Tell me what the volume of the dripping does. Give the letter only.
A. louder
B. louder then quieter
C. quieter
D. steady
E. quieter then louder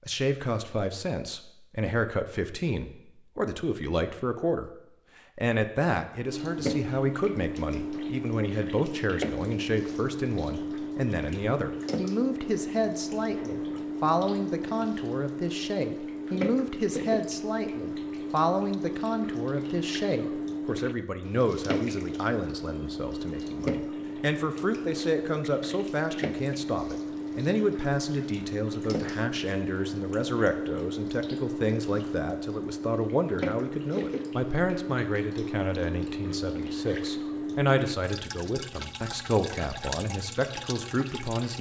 D.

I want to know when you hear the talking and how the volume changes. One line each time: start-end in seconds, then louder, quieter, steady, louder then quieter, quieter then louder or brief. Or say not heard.
0.1-4.7 steady
5.3-41.5 steady.